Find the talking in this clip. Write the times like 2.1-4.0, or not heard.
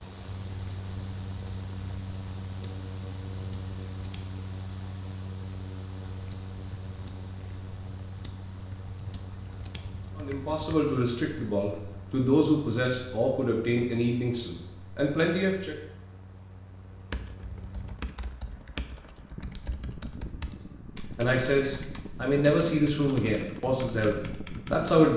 10.2-15.8, 21.1-25.1.